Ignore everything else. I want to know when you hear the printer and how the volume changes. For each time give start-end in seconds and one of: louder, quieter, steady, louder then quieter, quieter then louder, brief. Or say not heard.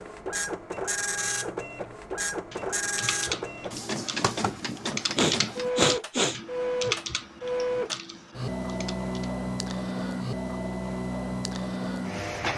0.0-12.5 steady.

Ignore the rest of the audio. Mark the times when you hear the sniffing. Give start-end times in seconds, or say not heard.
5.2-6.4.